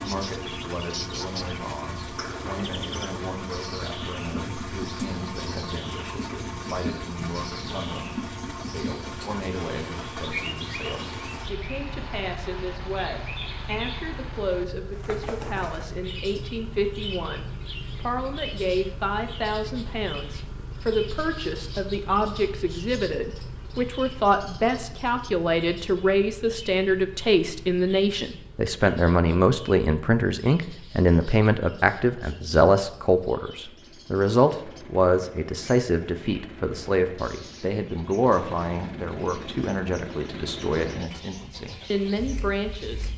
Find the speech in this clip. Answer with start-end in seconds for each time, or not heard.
0.0-43.1.